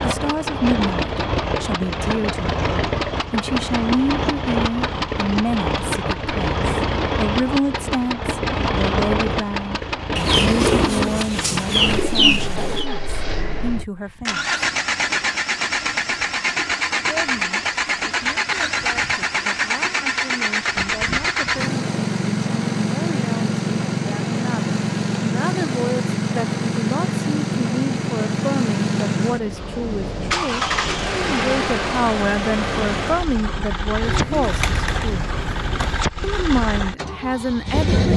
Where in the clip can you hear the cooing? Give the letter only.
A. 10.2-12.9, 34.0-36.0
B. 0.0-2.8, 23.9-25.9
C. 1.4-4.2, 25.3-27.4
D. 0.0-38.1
A.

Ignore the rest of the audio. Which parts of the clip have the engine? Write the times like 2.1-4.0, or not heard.
0.0-38.1.